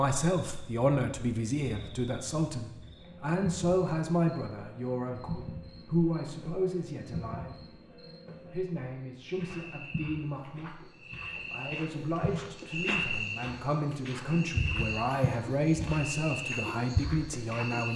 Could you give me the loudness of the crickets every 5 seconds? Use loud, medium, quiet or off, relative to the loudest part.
medium, medium, loud, loud.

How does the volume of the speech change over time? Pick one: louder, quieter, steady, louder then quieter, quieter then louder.
quieter then louder.